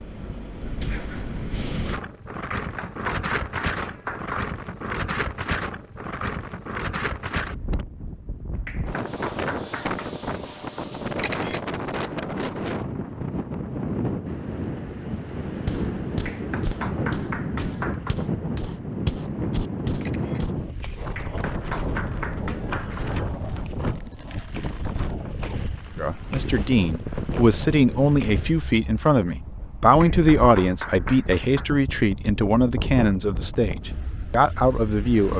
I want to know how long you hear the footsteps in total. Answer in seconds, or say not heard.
5 s.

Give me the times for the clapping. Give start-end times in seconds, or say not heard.
2.5-4.5, 8.7-10.2, 16.2-18.1, 21.1-23.1, 30.1-31.7.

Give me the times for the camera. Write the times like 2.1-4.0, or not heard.
11.2-11.6, 20.0-20.4.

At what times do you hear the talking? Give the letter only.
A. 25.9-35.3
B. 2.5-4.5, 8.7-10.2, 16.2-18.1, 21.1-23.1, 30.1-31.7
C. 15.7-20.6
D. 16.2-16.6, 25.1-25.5
A.